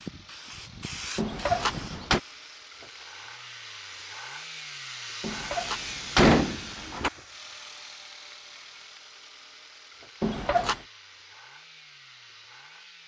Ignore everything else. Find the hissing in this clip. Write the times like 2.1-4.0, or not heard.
0.0-2.6.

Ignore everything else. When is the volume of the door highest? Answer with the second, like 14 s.
6 s.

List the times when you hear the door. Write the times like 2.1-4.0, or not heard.
1.1-2.2, 5.2-7.1, 10.2-10.8.